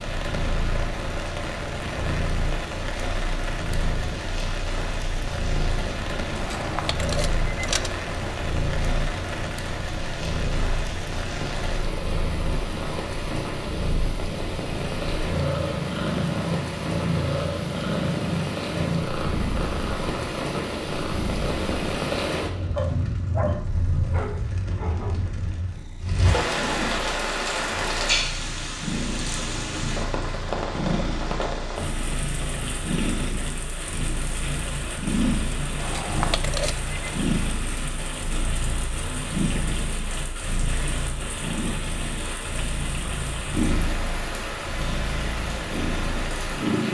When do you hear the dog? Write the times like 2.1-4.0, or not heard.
22.8-25.1.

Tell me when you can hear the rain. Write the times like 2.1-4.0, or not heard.
0.0-46.8.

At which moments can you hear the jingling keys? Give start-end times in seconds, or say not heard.
6.3-8.3, 35.8-37.2.